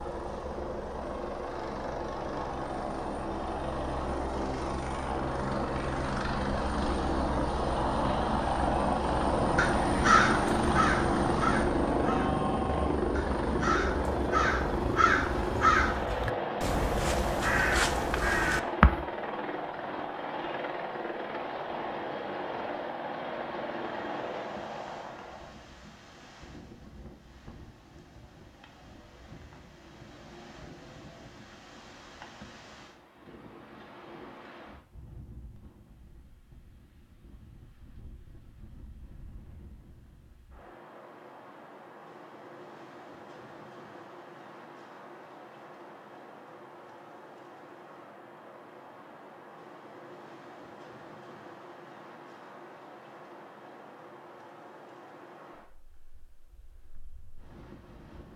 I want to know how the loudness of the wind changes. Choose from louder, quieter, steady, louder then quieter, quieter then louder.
steady.